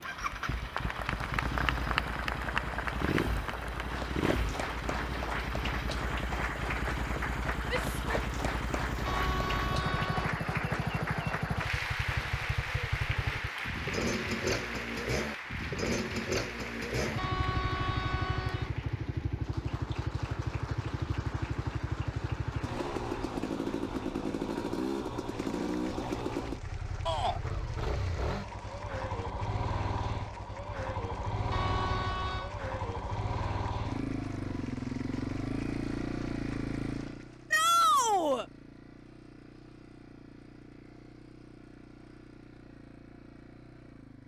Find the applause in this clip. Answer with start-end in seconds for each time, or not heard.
0.0-37.5.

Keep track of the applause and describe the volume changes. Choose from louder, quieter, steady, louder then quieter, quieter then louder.
quieter.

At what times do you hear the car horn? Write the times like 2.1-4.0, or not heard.
9.1-10.3, 17.1-18.7, 31.5-32.5.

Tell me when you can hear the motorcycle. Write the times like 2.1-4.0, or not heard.
0.0-44.2.